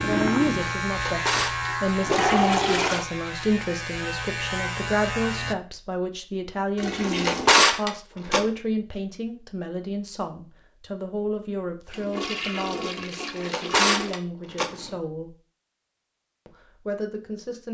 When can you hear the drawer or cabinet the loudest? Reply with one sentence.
The loudest moment of the drawer or cabinet is at 8 seconds.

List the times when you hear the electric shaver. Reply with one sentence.
The electric shaver can be heard from 0.0 to 5.5 s.